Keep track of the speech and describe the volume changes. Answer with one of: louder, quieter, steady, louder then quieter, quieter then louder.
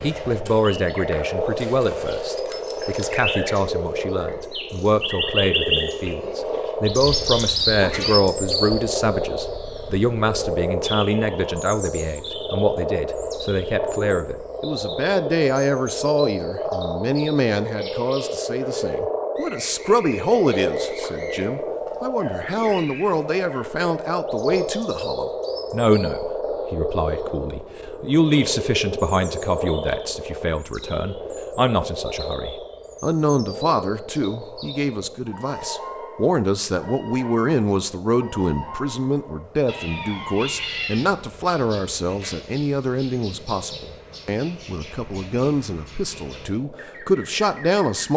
steady.